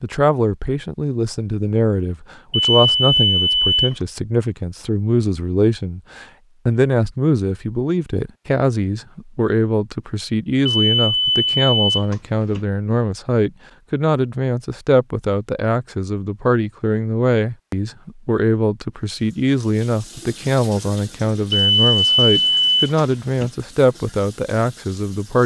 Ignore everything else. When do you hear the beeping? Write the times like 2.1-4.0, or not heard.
2.5-4.0, 10.7-12.7, 21.5-23.5.